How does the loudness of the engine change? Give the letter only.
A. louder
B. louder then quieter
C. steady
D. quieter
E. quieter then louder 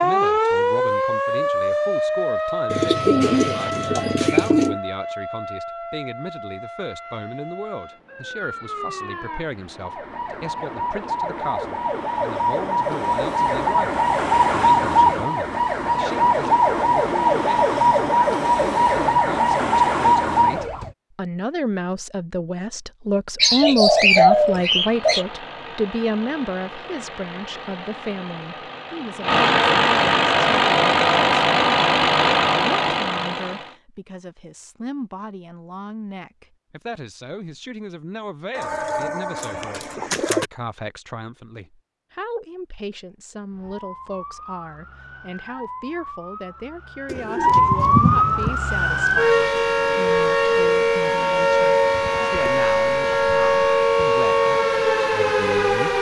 A.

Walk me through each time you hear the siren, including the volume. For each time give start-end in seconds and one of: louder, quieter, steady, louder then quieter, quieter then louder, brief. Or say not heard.
0.0-20.9 quieter then louder
43.5-55.9 louder.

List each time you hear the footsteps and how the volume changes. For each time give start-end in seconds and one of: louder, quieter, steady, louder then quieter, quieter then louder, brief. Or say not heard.
not heard.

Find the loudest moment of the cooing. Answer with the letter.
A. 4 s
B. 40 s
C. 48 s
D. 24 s
D.